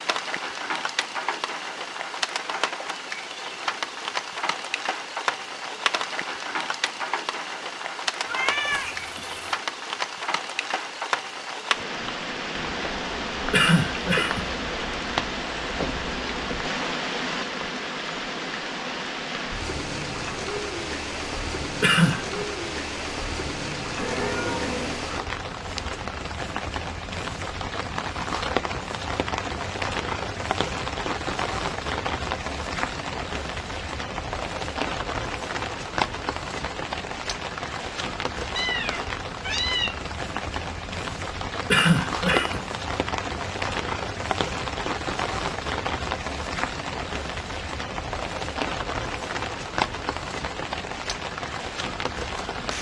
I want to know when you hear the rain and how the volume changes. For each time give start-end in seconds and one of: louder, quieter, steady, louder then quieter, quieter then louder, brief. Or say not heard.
0.0-52.7 steady.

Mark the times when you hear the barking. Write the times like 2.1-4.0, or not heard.
not heard.